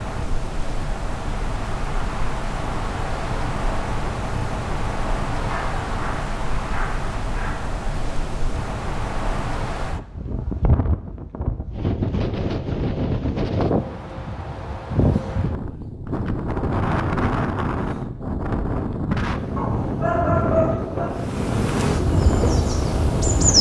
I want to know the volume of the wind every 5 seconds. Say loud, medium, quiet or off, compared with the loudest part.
medium, medium, loud, loud, loud.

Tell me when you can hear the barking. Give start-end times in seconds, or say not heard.
5.4-7.6, 19.6-21.1.